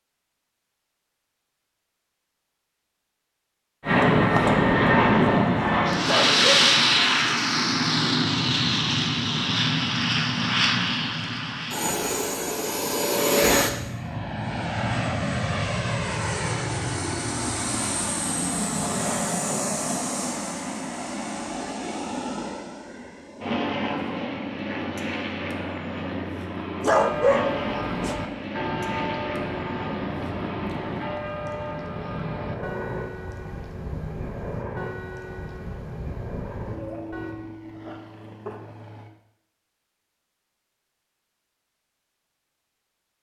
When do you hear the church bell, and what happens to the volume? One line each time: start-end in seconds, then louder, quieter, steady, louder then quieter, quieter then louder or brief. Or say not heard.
26.9-37.4 quieter.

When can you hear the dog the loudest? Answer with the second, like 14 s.
27 s.